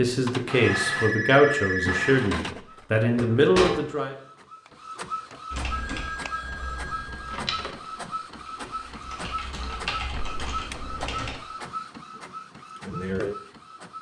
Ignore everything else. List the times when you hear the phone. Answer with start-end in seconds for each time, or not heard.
0.6-2.2, 5.7-7.8, 10.1-11.1.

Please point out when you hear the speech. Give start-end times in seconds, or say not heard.
0.0-4.2.